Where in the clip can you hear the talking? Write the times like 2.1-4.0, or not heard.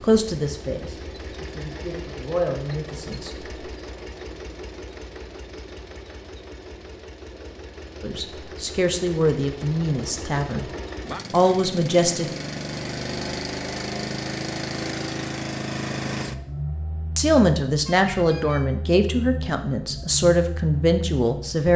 0.0-3.4, 8.0-10.7, 11.3-12.3, 17.1-21.7.